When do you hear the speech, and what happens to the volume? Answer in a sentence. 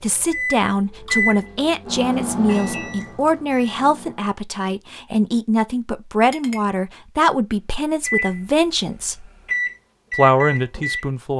The speech can be heard from 0.0 to 9.2 s, at a steady volume; and briefly from 10.2 to 11.3 s.